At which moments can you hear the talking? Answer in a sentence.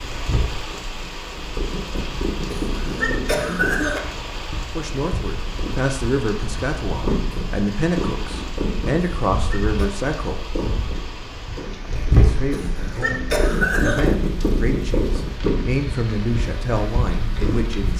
You can hear the talking from 4.7 to 10.4 s and from 12.2 to 17.9 s.